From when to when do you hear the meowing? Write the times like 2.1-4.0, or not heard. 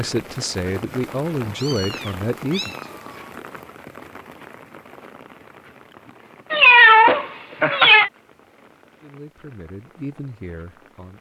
1.4-3.4, 6.5-8.1.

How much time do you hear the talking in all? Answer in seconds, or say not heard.
5 s.